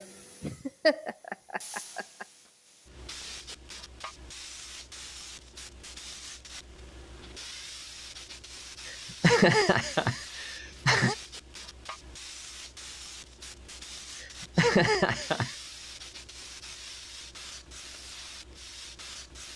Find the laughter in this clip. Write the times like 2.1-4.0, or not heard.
0.4-2.2, 8.8-11.2, 14.2-15.6.